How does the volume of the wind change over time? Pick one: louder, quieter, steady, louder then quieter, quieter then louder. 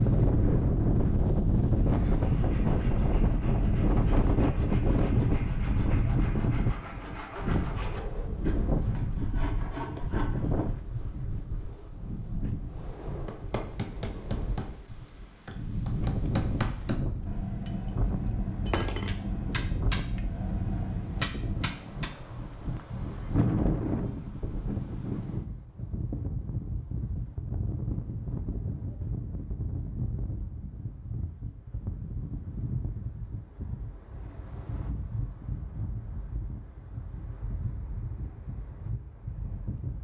quieter.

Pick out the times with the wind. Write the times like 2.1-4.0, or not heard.
0.0-39.9.